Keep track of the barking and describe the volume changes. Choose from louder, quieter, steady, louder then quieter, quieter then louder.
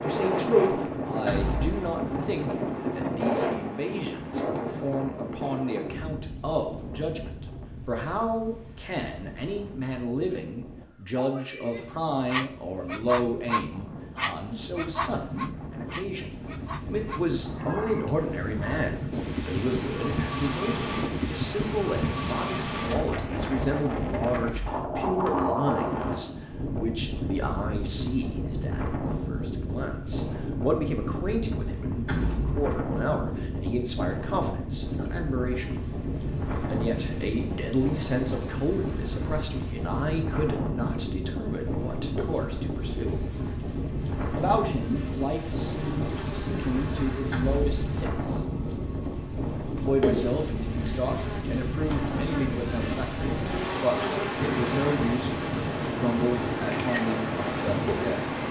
quieter.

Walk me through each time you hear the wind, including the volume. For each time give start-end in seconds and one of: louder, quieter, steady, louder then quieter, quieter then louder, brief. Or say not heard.
0.0-58.4 steady.